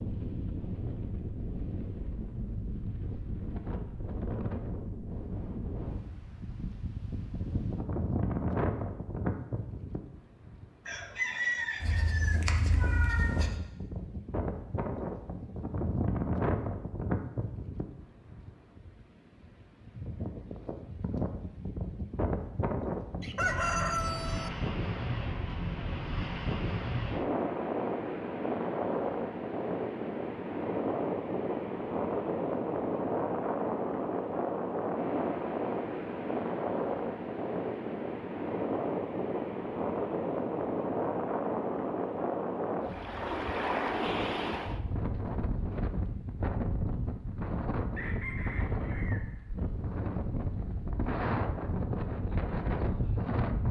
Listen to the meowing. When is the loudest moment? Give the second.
13 s.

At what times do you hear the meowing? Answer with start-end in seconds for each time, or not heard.
11.8-13.6.